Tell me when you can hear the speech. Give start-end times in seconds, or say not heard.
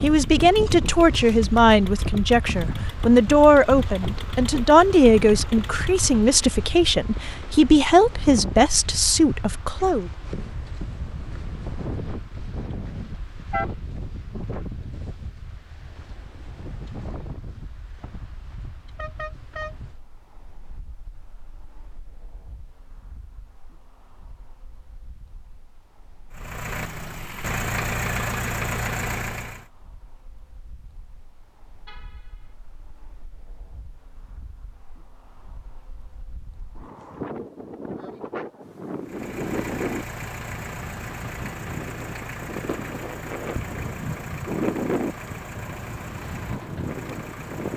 0.0-10.1.